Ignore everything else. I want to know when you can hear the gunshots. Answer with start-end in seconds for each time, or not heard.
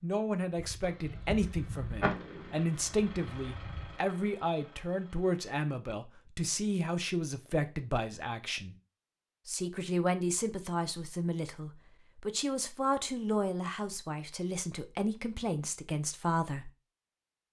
0.6-4.0.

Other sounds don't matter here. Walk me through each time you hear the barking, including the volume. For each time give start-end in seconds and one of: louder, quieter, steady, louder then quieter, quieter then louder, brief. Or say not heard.
not heard.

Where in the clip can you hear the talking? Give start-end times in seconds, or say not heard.
0.0-8.8, 9.4-16.7.